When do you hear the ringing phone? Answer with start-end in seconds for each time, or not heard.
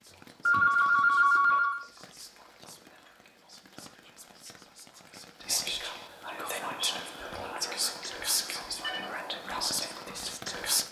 0.5-1.8, 8.0-9.1.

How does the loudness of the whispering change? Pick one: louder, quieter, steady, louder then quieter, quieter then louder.
louder.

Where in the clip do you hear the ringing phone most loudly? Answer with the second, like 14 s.
1 s.